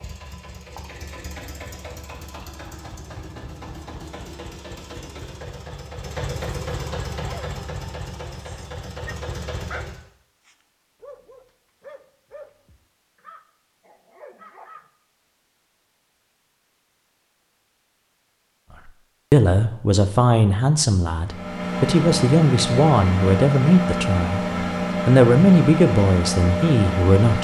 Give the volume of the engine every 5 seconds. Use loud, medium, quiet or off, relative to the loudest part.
quiet, medium, off, off, loud, loud.